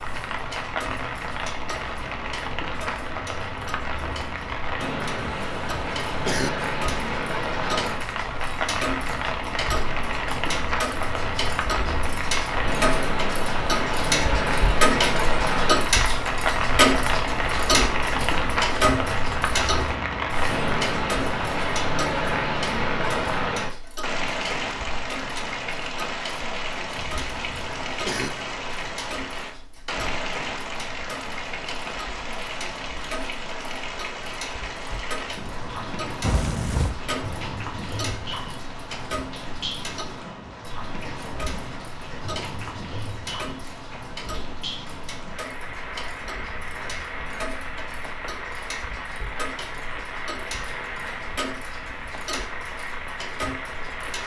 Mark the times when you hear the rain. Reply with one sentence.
The rain can be heard from 0.0 to 54.2 s.